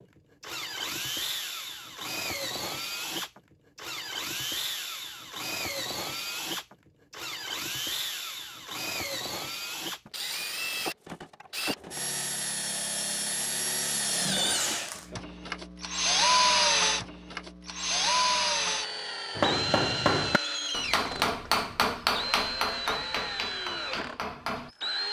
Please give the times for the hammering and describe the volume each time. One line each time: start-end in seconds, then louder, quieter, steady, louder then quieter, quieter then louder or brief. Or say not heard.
19.4-24.7 quieter.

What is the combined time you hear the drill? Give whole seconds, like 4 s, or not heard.
25 s.